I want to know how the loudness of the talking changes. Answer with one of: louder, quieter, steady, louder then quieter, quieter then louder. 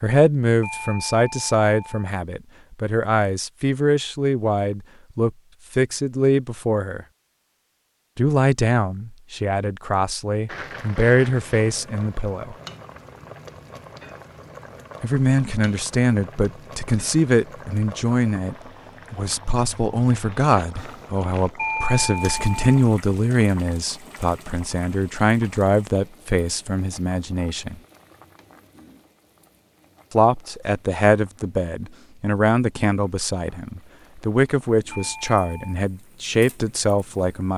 steady.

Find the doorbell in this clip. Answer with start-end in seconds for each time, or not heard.
0.6-2.1, 21.6-22.8, 34.9-35.8.